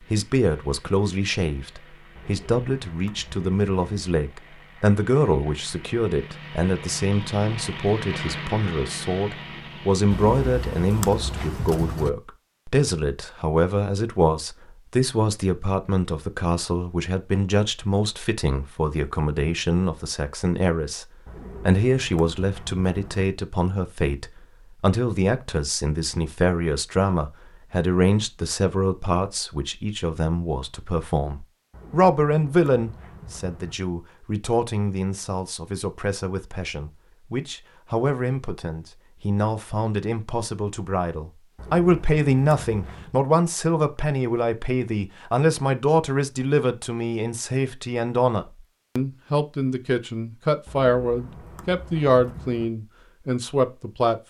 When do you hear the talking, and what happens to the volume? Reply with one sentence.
You can hear the talking from 0.0 to 54.2 s, at a steady volume.